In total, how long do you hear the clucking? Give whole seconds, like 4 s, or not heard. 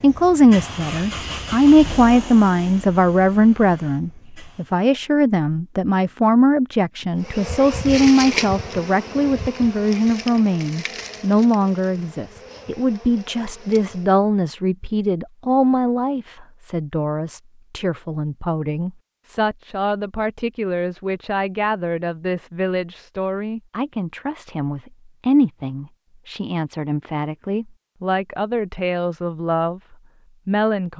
not heard.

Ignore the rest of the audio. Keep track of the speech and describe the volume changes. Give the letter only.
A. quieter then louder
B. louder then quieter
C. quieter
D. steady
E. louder
C.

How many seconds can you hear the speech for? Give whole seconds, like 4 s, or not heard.
31 s.